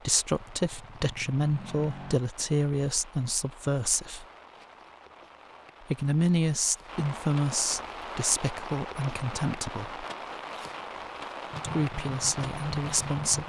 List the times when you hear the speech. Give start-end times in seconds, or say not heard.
0.1-4.2, 5.9-10.1, 11.6-13.4.